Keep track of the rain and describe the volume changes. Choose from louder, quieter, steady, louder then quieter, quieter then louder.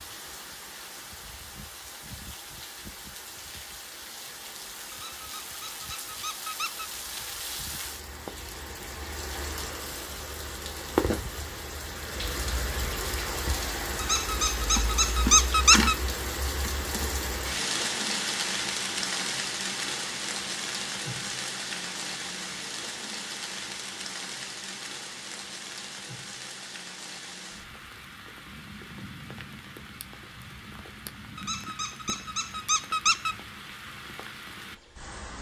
louder then quieter.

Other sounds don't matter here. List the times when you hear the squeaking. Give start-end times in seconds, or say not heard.
4.9-6.8, 14.0-15.9, 31.4-33.4.